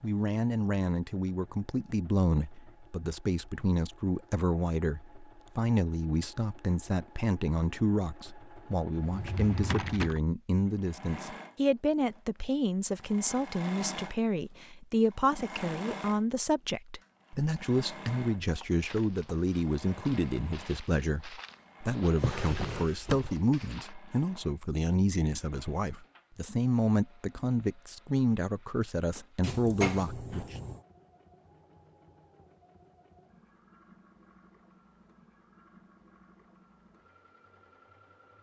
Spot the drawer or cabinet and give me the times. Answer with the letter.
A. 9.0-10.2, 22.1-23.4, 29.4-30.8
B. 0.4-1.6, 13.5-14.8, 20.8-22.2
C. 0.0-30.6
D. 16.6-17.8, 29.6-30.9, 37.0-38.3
A.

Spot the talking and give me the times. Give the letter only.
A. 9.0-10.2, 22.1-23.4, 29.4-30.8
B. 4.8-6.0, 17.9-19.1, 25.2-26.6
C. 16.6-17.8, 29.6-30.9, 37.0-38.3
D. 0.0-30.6
D.